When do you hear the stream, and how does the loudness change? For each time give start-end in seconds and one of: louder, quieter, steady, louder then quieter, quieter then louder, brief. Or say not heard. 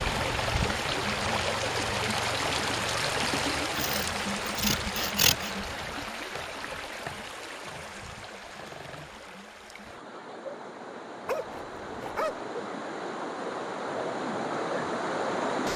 0.0-15.7 quieter then louder.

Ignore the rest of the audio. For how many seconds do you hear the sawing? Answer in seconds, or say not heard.
2 s.